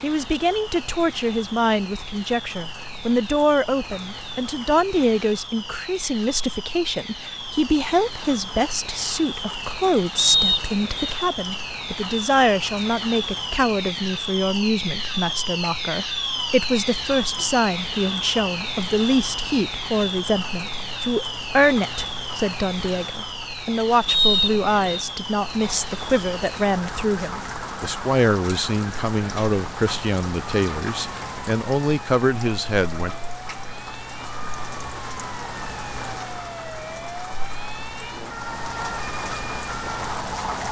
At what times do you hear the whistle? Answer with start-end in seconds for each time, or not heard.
10.2-11.2, 24.1-25.1.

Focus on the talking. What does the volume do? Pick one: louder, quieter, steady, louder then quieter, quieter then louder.
steady.